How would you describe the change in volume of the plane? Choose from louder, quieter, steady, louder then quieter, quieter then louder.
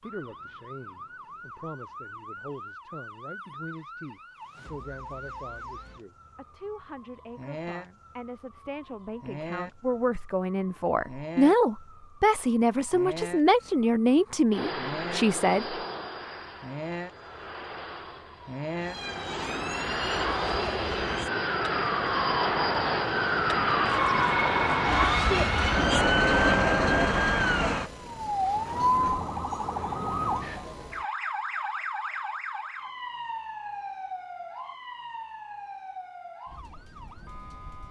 louder.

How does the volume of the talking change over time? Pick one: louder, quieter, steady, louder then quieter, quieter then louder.
louder.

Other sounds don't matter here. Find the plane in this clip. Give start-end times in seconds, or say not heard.
14.5-27.1.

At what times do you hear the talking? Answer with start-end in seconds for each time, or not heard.
0.0-15.8.